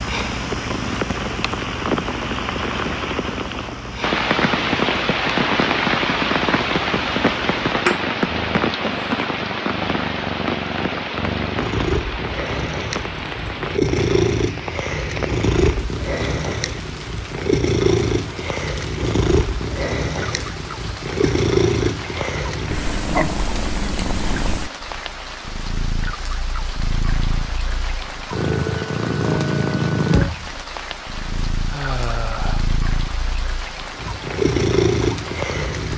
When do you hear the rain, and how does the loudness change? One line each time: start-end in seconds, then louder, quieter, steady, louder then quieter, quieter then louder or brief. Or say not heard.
0.0-35.9 quieter.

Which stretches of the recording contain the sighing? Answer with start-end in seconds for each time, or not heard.
31.6-32.7.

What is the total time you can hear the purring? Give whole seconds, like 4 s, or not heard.
36 s.